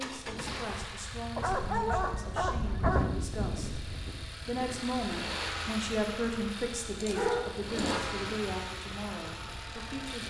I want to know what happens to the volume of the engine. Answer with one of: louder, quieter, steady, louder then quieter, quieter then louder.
quieter then louder.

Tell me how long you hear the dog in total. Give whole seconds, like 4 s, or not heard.
3 s.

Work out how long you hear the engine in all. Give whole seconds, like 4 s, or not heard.
10 s.